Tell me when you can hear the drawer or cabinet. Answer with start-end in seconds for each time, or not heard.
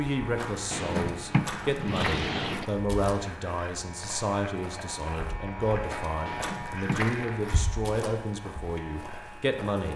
0.7-2.6, 6.2-7.2.